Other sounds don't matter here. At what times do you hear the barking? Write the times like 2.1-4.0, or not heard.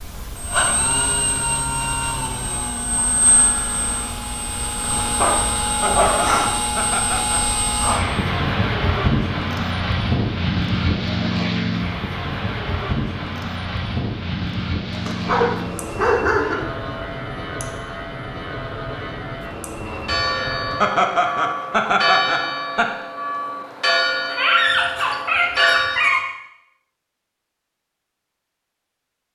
5.0-6.5, 14.9-16.6, 24.3-26.2.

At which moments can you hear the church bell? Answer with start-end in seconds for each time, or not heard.
20.1-26.3.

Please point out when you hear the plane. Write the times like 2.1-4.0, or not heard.
0.0-20.8.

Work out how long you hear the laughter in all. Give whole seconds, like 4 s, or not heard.
4 s.